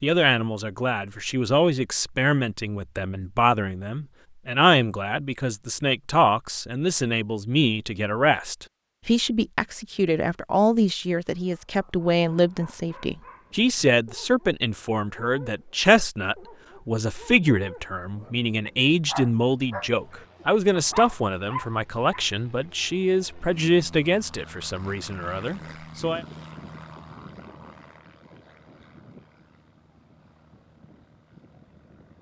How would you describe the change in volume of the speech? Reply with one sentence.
The volume of the speech stays about the same.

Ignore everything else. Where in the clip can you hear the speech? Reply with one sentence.
You can hear the speech from 0.0 to 26.2 s.